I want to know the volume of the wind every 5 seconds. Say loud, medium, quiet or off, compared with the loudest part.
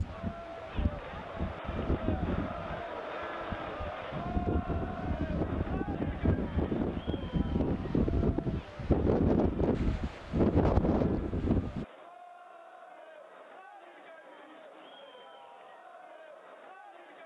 medium, loud, loud, off.